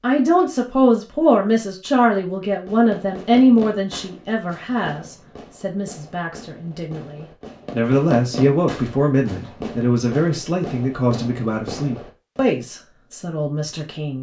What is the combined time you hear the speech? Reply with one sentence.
You can hear the speech for 14 seconds altogether.